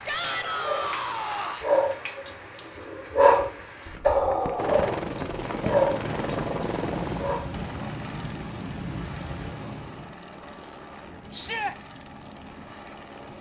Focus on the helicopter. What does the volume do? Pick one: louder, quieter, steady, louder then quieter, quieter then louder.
quieter.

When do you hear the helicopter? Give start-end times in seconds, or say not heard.
4.5-13.3.